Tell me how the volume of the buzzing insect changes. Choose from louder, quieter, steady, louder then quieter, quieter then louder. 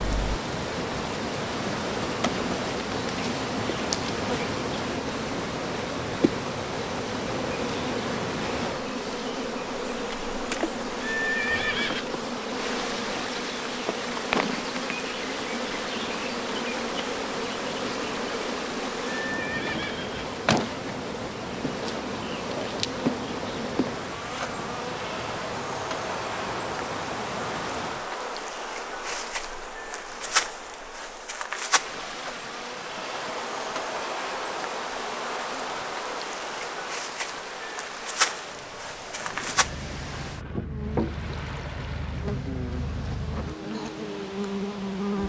steady.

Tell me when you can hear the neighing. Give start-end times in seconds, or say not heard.
11.0-12.1, 19.2-20.4, 39.1-40.8.